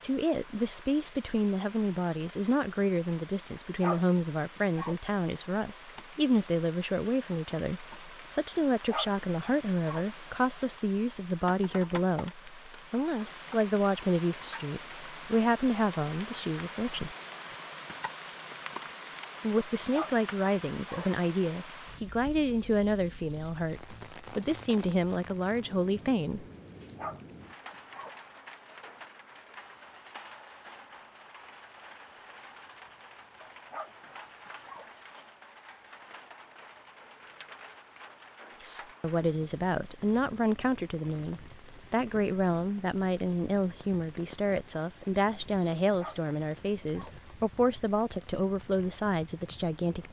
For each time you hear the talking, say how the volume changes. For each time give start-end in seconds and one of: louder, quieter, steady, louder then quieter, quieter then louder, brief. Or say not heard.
0.0-17.1 steady
19.4-26.4 steady
38.6-50.0 steady.